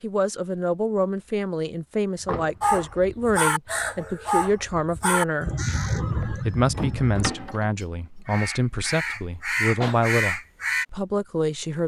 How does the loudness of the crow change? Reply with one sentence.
The volume of the crow goes down, then up.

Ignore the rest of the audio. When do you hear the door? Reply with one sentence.
The door can be heard from 2.1 to 2.9 s and from 6.1 to 7.7 s.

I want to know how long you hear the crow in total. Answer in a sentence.
The crow can be heard for 8 seconds in total.